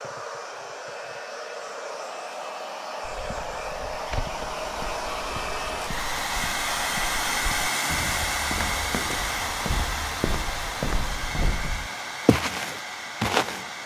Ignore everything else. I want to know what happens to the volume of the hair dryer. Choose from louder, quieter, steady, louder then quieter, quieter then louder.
louder then quieter.